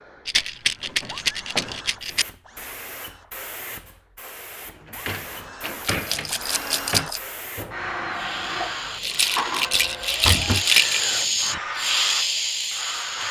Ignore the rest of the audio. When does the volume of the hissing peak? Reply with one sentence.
The loudest moment of the hissing is at 12 seconds.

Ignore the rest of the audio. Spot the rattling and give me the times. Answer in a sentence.
You can hear the rattling from 0.2 to 2.2 s, from 5.8 to 7.2 s and from 9.0 to 11.1 s.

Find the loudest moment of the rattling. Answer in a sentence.
The volume of the rattling peaks at 11 seconds.